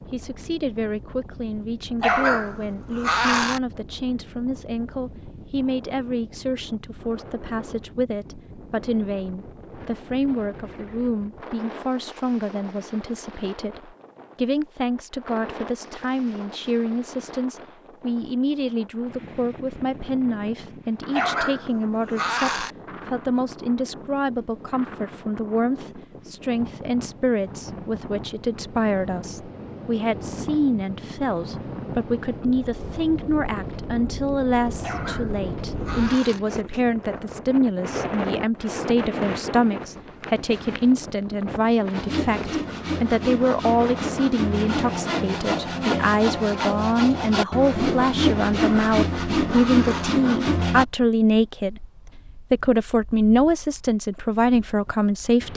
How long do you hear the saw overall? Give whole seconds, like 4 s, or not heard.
9 s.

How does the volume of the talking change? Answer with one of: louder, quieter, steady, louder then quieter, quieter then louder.
louder.